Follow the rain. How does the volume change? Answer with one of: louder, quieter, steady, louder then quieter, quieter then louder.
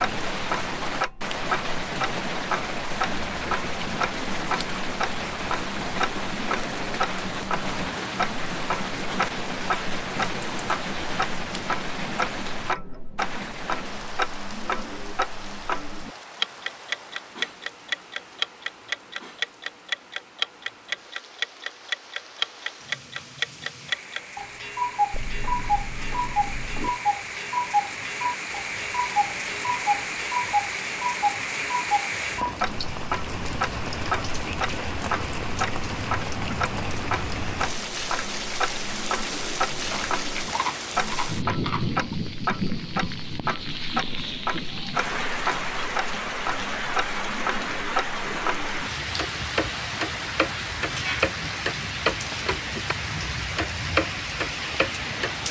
quieter then louder.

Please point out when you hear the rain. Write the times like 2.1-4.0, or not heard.
0.0-55.4.